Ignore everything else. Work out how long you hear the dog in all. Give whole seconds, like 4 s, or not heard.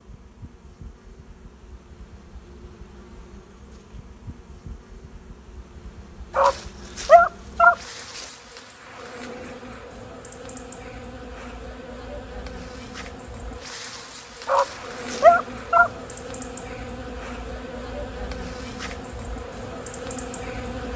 3 s.